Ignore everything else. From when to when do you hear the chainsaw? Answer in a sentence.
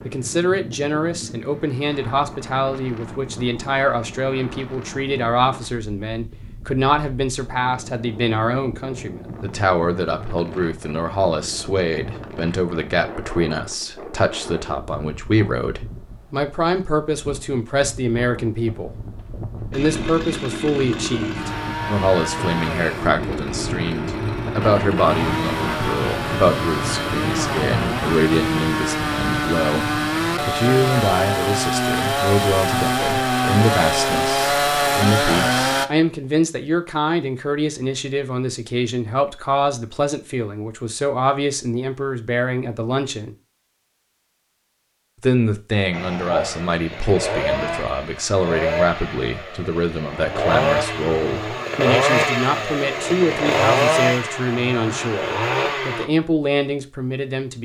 You can hear the chainsaw from 19.7 to 35.9 s and from 45.9 to 56.0 s.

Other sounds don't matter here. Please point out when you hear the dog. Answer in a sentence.
The dog can't be heard in this clip.